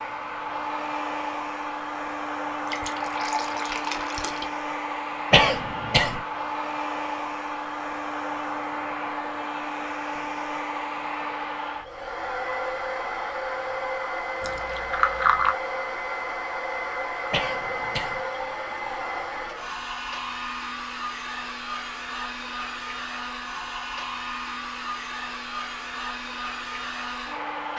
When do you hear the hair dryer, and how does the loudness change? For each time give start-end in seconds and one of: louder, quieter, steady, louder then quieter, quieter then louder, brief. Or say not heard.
0.0-27.7 steady.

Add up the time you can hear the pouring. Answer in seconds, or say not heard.
3 s.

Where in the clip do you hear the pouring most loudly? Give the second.
15 s.